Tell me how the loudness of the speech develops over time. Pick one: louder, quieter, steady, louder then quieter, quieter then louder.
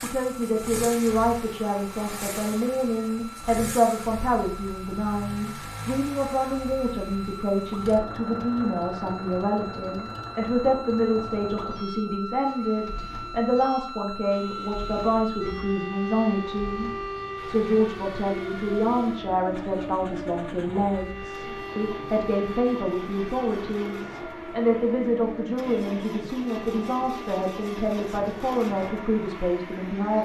steady.